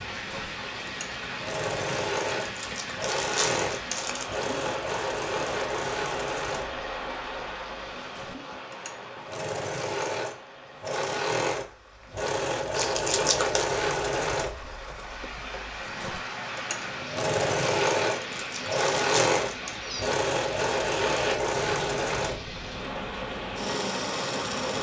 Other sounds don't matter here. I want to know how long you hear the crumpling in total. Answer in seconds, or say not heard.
4 s.